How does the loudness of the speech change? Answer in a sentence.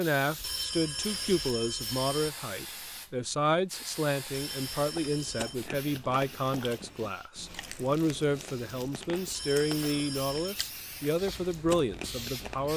The volume of the speech stays about the same.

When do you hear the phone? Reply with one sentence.
You can hear the phone from 0.3 to 2.3 s, from 4.2 to 5.5 s and from 9.2 to 10.6 s.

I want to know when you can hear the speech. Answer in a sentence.
The speech can be heard from 0.0 to 12.7 s.